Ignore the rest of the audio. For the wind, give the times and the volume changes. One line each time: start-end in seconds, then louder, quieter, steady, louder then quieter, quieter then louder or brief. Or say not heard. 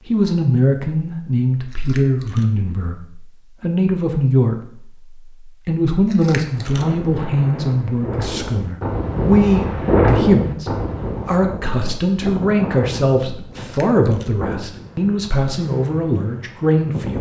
6.4-17.1 louder then quieter.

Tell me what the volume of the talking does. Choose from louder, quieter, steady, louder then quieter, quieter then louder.
steady.